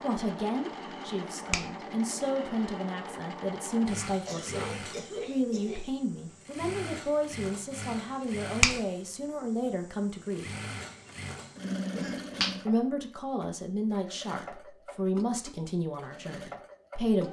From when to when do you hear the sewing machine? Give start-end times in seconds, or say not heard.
0.0-17.2.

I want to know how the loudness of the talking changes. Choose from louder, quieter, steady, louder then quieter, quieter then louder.
steady.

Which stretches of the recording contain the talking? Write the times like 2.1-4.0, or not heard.
0.0-10.4, 12.7-17.2.